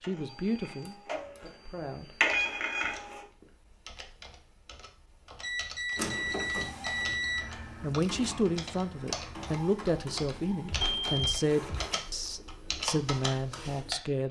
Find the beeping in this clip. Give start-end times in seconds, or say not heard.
0.3-2.2, 5.4-7.5, 10.7-11.8.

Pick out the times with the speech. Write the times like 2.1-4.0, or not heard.
0.0-2.1, 7.8-14.2.